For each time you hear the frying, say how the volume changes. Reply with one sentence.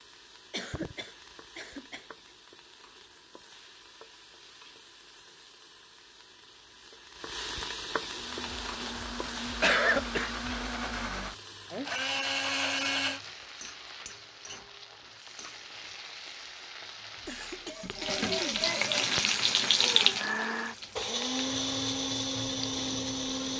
The frying can be heard from 0.0 to 23.5 s, getting louder.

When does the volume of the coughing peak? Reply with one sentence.
The volume of the coughing peaks at 10 seconds.